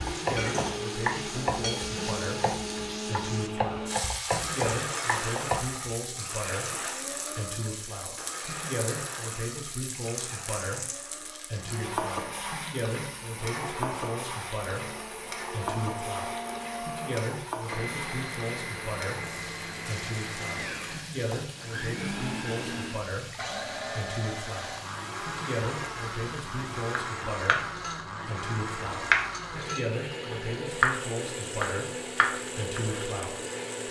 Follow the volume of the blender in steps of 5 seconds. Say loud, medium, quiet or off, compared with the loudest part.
loud, loud, medium, loud, loud, loud, loud.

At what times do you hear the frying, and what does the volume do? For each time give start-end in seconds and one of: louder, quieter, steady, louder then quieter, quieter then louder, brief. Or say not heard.
0.0-33.8 quieter.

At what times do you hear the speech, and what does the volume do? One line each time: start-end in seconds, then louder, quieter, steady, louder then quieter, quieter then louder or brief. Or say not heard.
0.0-33.8 steady.